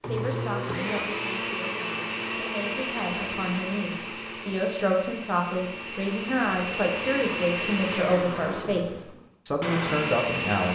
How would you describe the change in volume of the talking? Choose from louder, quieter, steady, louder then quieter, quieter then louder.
louder.